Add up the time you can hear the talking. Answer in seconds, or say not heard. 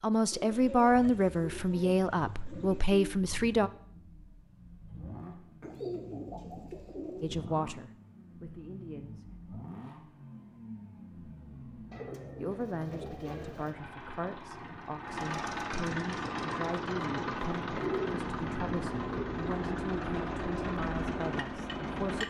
16 s.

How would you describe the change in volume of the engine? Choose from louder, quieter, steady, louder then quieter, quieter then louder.
louder.